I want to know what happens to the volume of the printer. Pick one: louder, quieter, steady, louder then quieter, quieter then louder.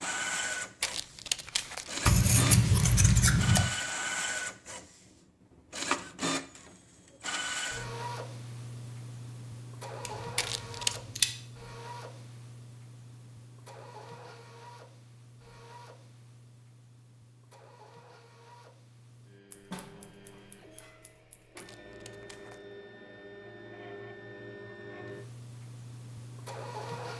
quieter then louder.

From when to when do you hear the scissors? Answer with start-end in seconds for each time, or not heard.
2.0-3.7, 10.1-11.3, 19.5-21.5.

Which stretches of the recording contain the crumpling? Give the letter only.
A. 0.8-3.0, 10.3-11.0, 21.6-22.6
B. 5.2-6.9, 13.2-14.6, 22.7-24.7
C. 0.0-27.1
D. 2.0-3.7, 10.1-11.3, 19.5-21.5
A.